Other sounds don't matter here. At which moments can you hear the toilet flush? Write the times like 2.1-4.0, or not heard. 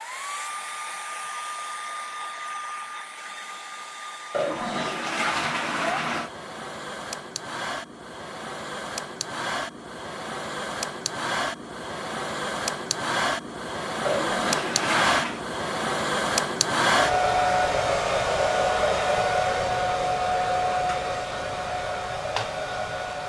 4.3-6.3, 14.1-15.4.